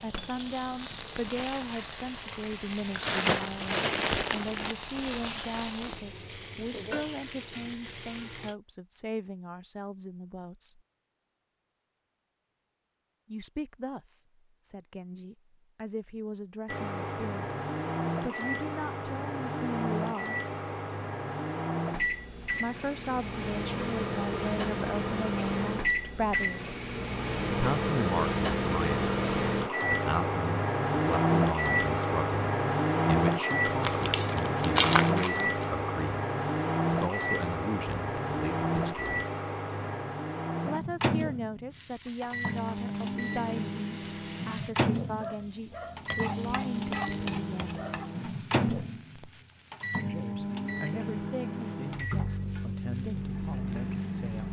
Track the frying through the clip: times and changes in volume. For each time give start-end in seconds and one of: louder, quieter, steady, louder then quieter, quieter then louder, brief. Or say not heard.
0.0-8.6 steady
41.7-54.4 louder then quieter.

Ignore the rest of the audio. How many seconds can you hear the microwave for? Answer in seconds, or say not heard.
38 s.